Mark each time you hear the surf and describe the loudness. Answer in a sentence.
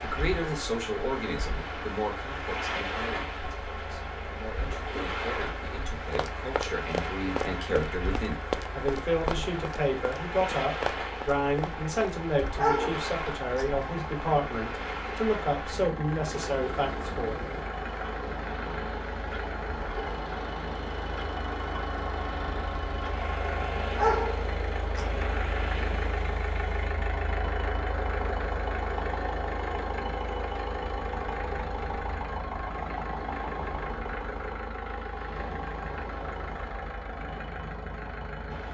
You can hear the surf from 0.0 to 38.6 s, getting quieter.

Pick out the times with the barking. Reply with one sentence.
The barking can be heard from 12.6 to 13.8 s and from 23.9 to 25.2 s.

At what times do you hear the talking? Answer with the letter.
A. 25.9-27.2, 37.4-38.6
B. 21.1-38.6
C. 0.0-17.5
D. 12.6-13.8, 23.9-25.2
C.